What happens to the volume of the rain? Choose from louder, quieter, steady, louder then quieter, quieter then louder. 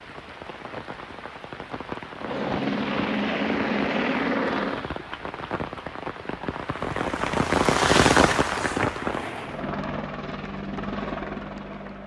louder.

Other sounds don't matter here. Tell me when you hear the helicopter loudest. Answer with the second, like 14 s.
4 s.